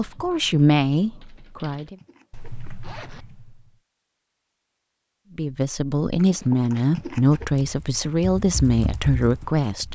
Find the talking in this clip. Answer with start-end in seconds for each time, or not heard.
0.0-1.9, 5.3-9.9.